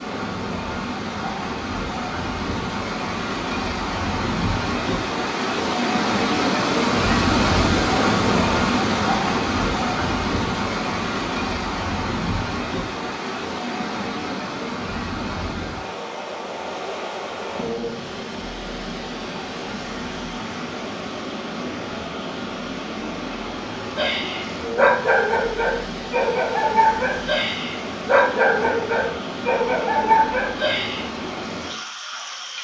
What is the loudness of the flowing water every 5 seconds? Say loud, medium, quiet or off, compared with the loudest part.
medium, loud, medium, medium, medium, medium, medium.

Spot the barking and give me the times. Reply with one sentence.
The barking can be heard from 23.9 to 31.1 s.